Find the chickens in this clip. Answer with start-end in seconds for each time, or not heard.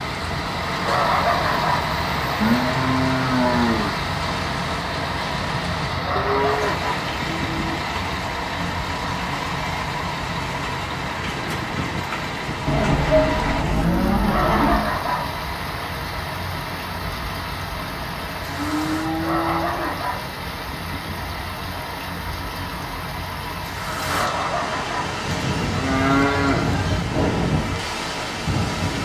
not heard.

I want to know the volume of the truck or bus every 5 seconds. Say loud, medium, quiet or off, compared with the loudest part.
loud, loud, loud, medium, medium, medium.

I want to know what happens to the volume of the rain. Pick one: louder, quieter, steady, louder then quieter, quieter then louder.
louder.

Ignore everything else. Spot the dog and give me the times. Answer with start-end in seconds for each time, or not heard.
0.8-1.9, 6.0-7.1, 14.2-15.3, 19.2-20.2, 24.1-25.1.